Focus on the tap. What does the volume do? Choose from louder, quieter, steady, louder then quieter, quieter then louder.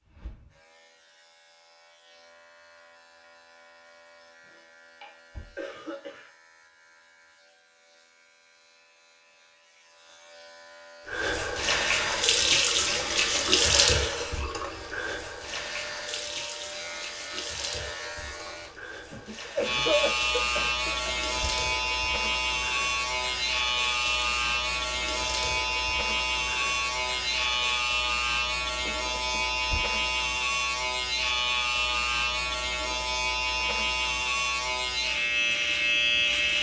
quieter.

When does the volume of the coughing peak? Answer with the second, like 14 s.
20 s.